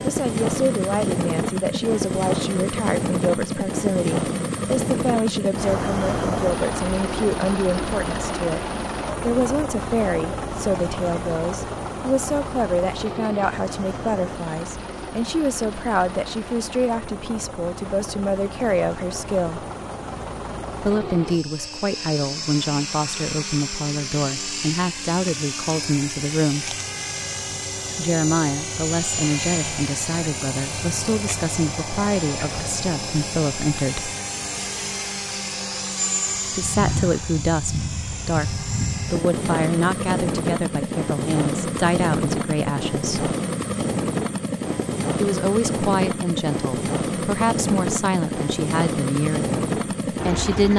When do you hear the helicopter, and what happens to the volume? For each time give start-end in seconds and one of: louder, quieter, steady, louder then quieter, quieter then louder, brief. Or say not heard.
0.0-50.7 quieter then louder.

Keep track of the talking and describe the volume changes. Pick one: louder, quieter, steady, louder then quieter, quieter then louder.
steady.